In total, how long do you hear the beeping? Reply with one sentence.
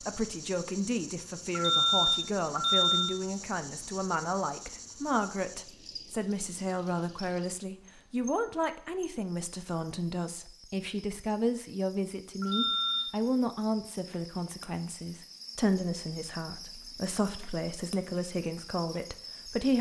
The beeping can be heard for 2 seconds in total.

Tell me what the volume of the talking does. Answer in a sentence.
The loudness of the talking stays about the same.